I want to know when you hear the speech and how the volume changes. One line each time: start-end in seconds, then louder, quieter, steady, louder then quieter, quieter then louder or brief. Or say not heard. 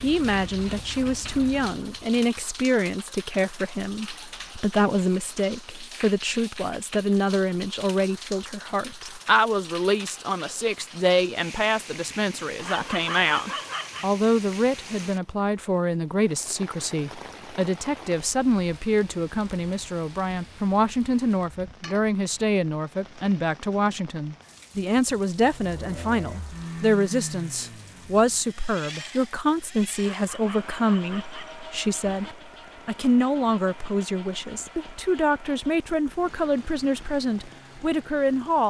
0.0-38.6 steady.